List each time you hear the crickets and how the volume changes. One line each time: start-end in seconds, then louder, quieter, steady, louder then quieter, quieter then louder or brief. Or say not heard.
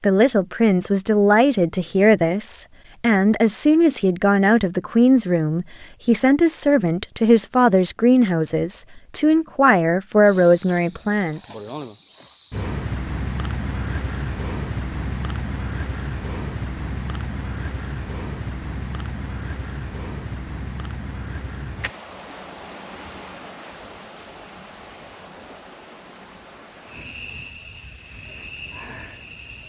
10.2-29.6 quieter.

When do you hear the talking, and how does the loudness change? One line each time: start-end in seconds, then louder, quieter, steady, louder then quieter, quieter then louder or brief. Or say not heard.
0.0-11.5 steady.